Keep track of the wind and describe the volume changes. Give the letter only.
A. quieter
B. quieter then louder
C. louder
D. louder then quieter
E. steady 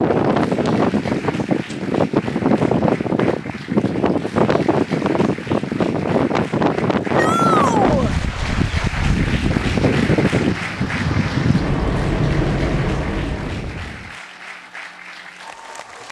E.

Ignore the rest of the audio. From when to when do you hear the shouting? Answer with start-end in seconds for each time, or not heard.
7.2-8.2.